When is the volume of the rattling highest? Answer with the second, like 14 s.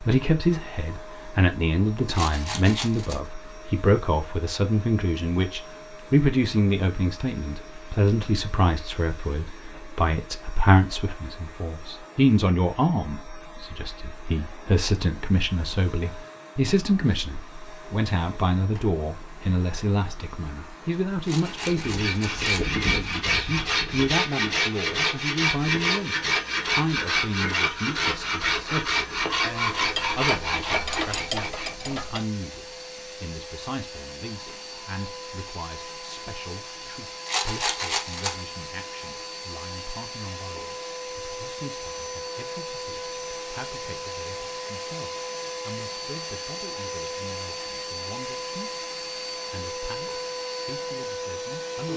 38 s.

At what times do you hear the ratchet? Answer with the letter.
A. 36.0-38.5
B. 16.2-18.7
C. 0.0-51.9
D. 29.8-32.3
D.